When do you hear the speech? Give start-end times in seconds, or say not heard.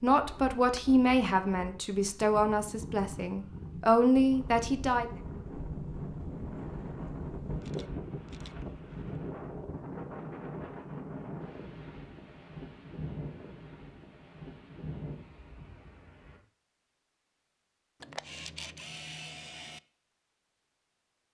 0.0-5.2.